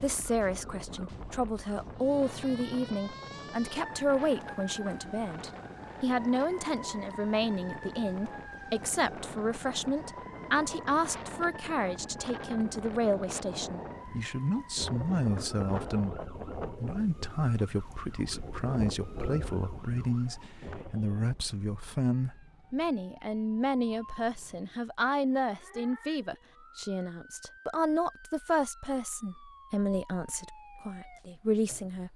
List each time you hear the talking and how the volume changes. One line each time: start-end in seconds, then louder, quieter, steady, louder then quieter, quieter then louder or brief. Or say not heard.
0.0-32.1 steady.